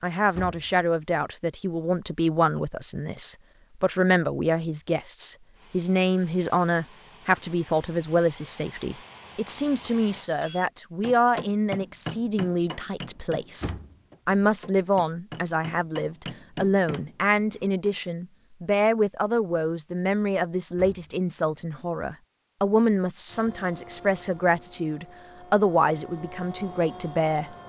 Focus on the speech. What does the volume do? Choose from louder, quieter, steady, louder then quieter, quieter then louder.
steady.